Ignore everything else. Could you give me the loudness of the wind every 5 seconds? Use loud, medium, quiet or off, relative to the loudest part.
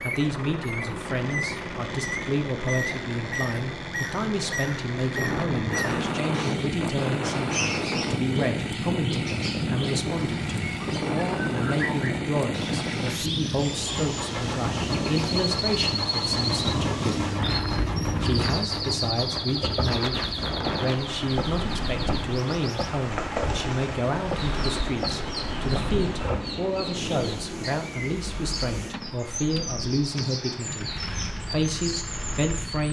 off, loud, loud, loud, medium, medium, quiet.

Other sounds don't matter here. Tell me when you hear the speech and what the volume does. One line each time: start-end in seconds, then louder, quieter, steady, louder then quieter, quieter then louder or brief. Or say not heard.
0.0-17.4 steady
18.2-30.9 steady
31.5-32.8 brief.